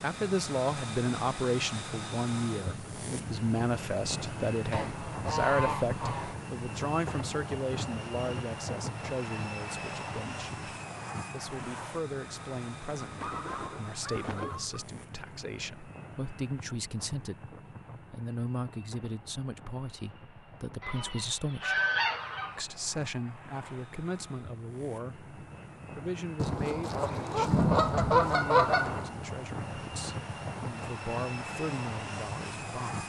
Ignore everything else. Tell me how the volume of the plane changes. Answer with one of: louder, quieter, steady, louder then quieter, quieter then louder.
quieter then louder.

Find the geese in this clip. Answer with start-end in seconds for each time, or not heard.
4.7-6.3, 13.0-14.8, 20.8-22.6, 26.4-29.1.